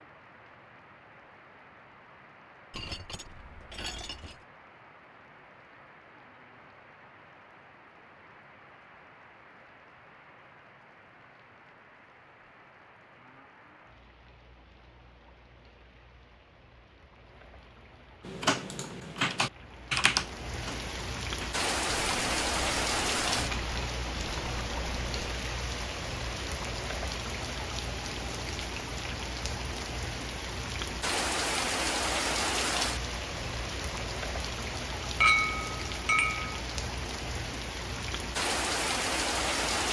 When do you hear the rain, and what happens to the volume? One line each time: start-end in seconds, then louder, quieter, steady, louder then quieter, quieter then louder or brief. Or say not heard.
0.0-39.8 louder.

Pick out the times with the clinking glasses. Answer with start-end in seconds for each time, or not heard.
2.7-4.4, 35.2-36.6.